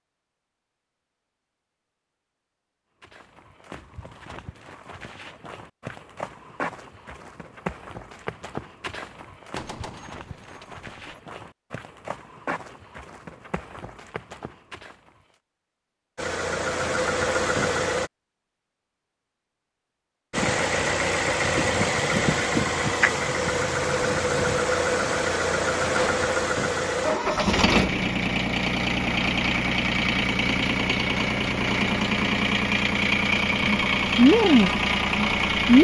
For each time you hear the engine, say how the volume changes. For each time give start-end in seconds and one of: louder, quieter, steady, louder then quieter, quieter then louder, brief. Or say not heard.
16.1-18.1 brief
20.3-35.7 steady.